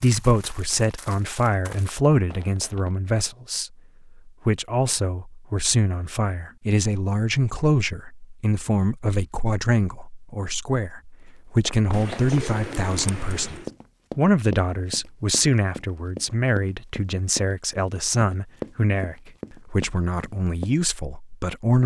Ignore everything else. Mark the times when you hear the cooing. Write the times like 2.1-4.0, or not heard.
11.9-13.7.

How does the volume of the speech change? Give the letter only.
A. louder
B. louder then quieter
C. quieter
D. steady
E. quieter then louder
D.